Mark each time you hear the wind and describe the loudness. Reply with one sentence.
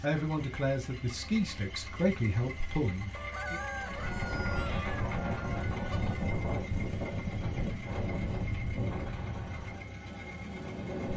You can hear the wind from 3.8 to 11.1 s, getting quieter.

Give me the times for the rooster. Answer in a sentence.
The rooster can be heard from 3.1 to 6.2 s.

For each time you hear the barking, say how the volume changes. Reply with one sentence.
The barking can't be heard in this clip.